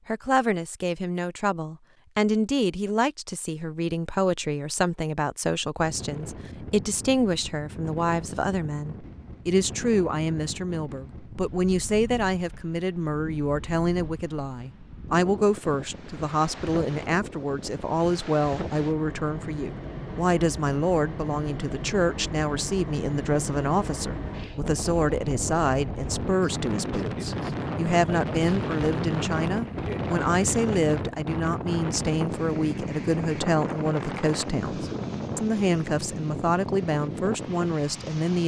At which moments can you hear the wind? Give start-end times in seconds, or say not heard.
5.8-38.4.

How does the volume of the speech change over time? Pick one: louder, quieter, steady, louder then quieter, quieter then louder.
steady.